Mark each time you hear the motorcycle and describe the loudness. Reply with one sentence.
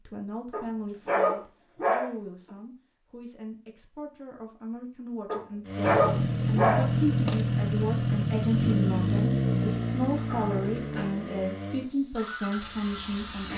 You can hear the motorcycle from 5.7 to 13.5 s, getting quieter.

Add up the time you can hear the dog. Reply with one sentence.
The dog can be heard for 4 seconds in total.